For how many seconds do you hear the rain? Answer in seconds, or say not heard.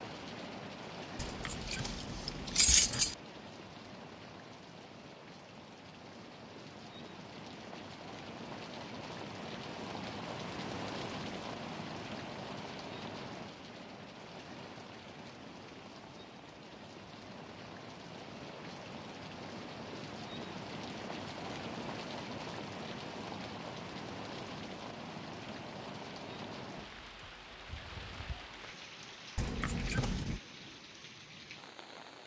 32 s.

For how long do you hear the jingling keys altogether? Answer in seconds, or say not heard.
3 s.